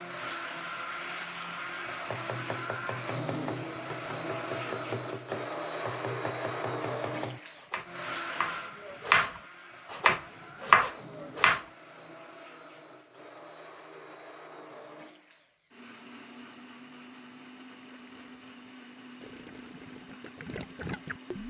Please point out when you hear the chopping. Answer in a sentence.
You can hear the chopping from 2.0 to 11.7 s.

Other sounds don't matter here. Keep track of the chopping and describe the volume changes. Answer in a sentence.
The loudness of the chopping goes up.